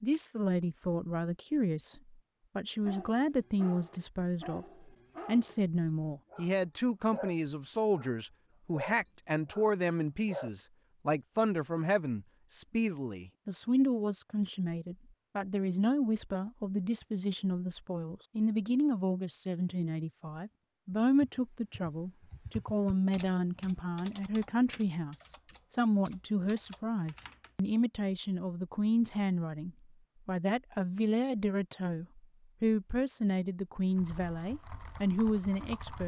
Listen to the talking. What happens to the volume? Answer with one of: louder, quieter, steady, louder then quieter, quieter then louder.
steady.